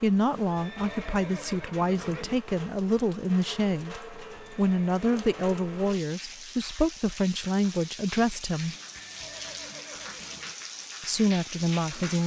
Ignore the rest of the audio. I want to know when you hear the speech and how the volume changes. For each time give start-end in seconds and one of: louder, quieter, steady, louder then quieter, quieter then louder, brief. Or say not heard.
0.0-8.8 steady
11.1-12.2 brief.